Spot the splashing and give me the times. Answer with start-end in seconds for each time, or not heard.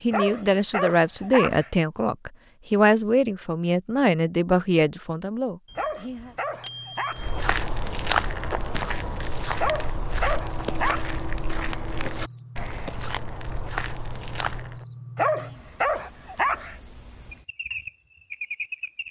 not heard.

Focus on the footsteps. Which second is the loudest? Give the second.
8 s.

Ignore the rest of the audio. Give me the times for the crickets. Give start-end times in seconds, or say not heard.
6.3-19.0.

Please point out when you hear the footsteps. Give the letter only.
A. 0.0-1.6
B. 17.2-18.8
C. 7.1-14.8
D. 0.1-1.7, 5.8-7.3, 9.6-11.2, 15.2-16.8
C.